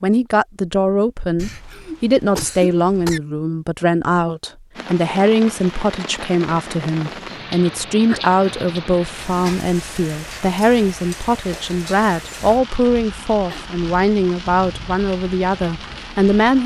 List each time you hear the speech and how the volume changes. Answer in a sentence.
You can hear the speech from 0.0 to 16.6 s, at a steady volume.